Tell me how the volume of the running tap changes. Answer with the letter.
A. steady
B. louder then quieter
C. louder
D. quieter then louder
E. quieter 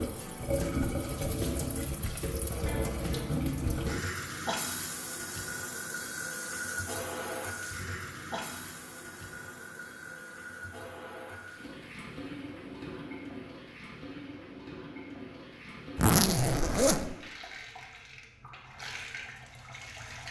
E.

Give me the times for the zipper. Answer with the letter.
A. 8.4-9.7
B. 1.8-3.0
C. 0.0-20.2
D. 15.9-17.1
D.